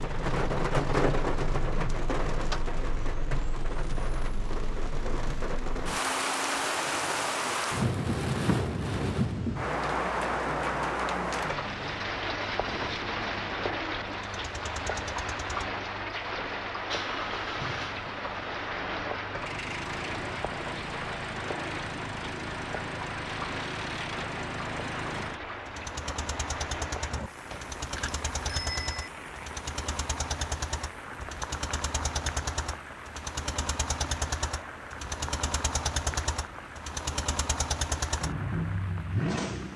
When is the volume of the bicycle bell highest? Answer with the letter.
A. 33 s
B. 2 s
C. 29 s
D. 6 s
C.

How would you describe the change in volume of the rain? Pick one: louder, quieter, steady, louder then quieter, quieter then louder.
quieter.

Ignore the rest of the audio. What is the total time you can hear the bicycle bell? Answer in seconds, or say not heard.
2 s.